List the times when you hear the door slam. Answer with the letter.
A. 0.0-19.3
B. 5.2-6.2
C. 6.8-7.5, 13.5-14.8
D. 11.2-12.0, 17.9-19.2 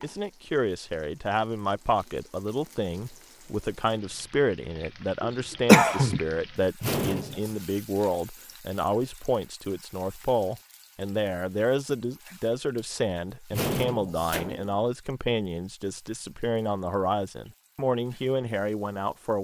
C.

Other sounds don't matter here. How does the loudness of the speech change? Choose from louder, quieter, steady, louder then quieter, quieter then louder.
steady.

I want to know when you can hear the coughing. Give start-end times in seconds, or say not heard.
5.2-6.2.